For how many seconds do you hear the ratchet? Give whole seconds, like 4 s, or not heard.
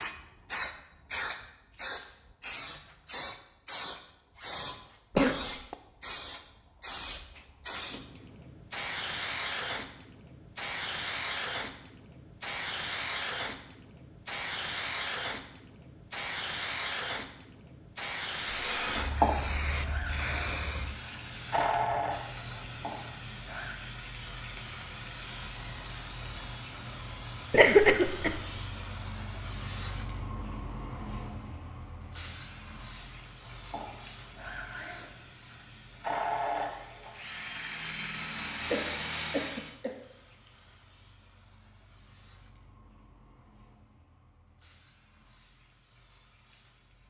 not heard.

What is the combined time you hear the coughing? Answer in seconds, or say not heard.
3 s.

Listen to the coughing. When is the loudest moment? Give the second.
28 s.